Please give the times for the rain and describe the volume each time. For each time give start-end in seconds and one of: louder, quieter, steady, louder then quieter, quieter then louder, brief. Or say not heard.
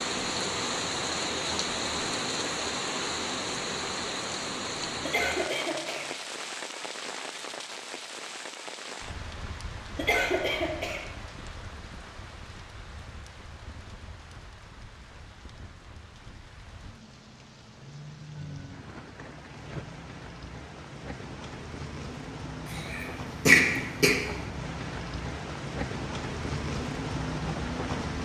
0.0-28.2 quieter then louder.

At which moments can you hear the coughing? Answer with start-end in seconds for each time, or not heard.
5.0-6.1, 9.9-11.1, 22.9-24.1.